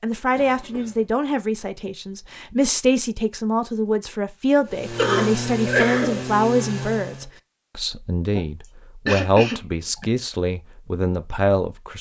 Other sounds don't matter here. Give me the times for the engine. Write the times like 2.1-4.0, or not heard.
4.7-7.3.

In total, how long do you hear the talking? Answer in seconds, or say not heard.
12 s.